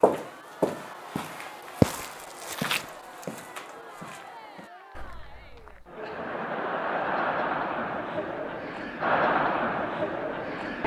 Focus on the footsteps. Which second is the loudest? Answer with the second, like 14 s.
2 s.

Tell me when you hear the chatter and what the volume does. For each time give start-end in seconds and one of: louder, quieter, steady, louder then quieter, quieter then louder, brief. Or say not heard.
0.2-10.8 louder.